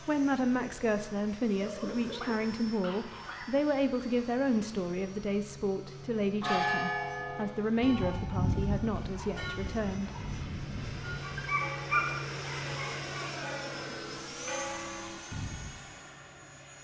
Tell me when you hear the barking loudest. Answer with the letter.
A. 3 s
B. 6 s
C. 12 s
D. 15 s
C.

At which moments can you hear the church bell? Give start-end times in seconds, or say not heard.
6.2-15.8.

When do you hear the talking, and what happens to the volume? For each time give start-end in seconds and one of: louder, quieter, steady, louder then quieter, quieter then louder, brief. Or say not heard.
0.0-10.1 steady.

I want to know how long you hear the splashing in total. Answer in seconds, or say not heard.
not heard.